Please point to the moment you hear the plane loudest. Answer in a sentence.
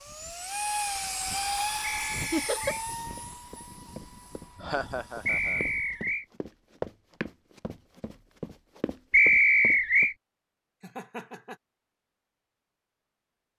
The volume of the plane peaks at 1 second.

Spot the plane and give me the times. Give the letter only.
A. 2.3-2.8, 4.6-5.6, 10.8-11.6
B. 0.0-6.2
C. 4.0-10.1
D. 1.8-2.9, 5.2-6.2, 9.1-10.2
B.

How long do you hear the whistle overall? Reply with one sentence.
You can hear the whistle for 3 seconds altogether.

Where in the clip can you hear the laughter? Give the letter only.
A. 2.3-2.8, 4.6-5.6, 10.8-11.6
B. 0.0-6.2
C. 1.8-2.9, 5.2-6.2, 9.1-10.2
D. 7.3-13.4
A.